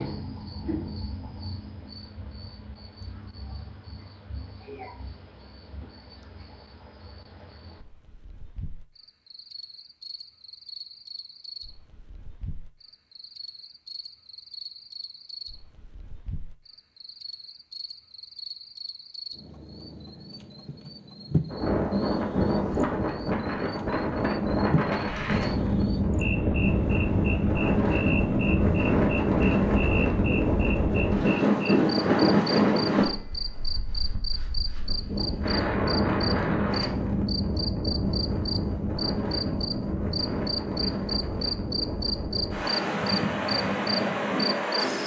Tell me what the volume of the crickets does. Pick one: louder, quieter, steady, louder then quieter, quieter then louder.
louder.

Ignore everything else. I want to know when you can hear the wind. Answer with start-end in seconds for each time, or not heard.
21.5-45.0.